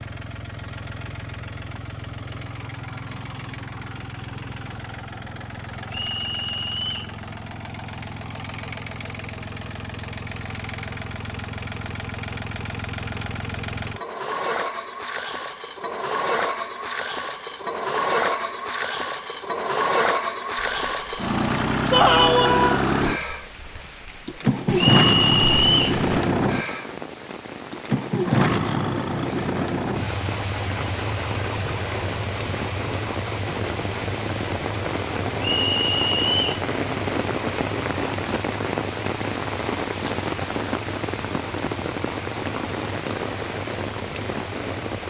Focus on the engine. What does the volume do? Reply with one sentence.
The volume of the engine goes up, then down.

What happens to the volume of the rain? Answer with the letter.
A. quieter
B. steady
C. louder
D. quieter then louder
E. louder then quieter
C.